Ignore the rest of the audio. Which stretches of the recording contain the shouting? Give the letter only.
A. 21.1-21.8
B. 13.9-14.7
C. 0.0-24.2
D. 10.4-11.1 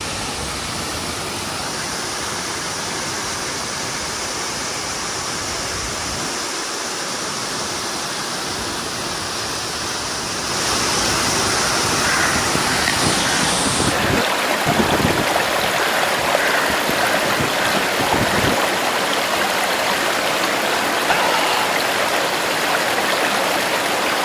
A.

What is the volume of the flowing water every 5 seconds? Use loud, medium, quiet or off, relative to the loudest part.
medium, medium, loud, loud, loud.